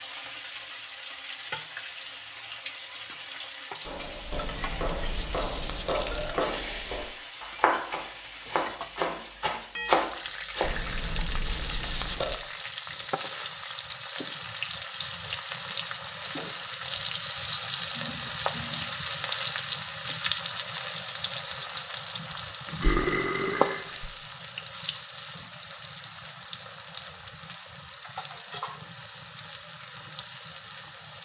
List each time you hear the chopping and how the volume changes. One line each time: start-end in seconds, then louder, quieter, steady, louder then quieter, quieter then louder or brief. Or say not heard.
3.8-10.7 louder.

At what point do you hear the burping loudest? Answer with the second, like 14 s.
23 s.